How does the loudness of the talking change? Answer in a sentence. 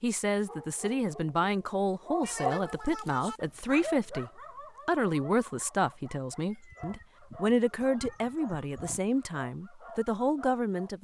The volume of the talking stays about the same.